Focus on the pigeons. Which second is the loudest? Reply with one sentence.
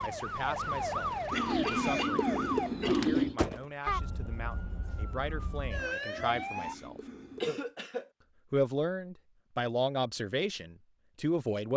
The loudest moment of the pigeons is at 3 seconds.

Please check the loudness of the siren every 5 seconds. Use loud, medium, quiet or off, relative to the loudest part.
loud, loud, off.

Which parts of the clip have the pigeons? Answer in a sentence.
The pigeons can be heard from 1.3 to 3.4 s and from 6.1 to 7.6 s.